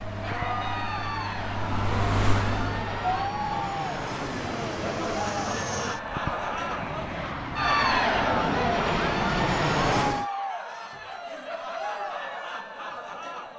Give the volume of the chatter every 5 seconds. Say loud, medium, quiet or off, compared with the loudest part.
medium, loud, medium.